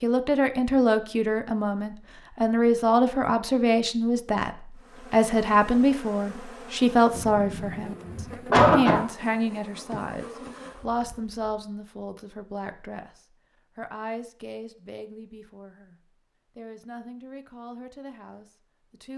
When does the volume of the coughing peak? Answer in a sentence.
The loudest moment of the coughing is at 9 seconds.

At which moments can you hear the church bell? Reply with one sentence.
You can't hear the church bell here.